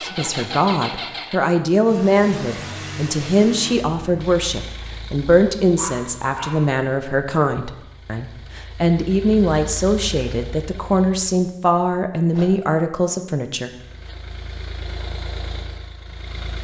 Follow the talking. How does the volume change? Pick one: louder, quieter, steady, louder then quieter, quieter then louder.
steady.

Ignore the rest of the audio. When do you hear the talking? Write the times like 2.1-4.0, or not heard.
0.0-13.7.